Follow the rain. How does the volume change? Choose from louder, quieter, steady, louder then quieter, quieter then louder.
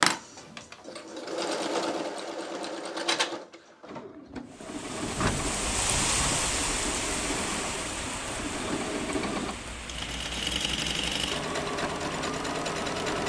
quieter.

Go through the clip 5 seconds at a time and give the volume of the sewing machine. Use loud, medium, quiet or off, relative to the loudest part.
loud, medium, loud.